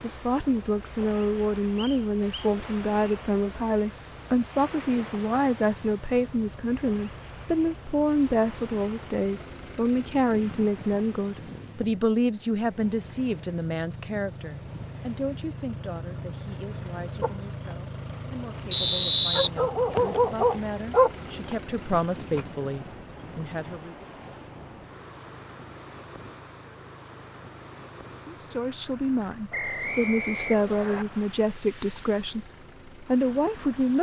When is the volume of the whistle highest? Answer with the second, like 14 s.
19 s.